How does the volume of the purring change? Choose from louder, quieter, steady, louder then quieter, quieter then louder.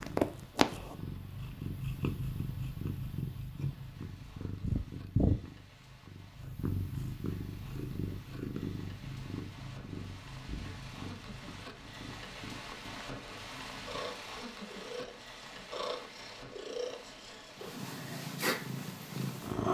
quieter then louder.